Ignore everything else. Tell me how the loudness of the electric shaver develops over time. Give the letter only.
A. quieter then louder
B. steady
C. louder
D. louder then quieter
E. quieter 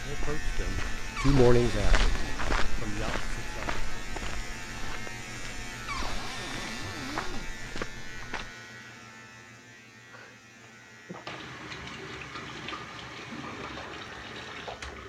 E.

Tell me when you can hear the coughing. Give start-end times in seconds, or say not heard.
not heard.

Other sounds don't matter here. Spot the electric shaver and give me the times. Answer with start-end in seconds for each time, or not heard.
0.0-15.0.